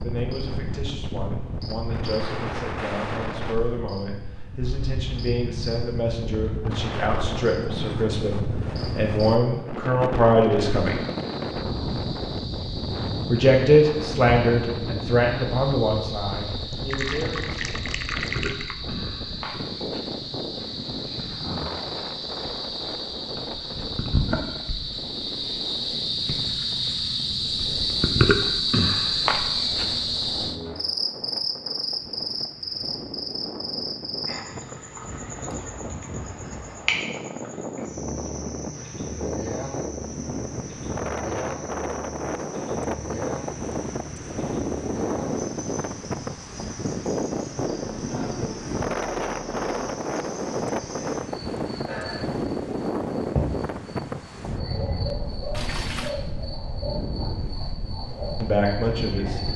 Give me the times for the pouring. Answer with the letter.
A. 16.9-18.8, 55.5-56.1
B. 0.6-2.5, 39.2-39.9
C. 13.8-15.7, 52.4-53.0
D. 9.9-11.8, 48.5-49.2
A.